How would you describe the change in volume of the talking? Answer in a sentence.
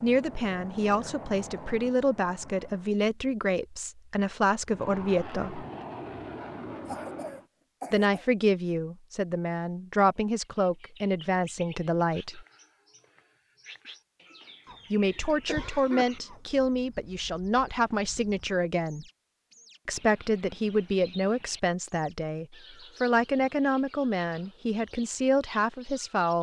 The volume of the talking stays about the same.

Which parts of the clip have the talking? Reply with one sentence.
You can hear the talking from 0.0 to 5.7 s, from 7.9 to 12.4 s, from 14.9 to 19.1 s and from 19.9 to 26.3 s.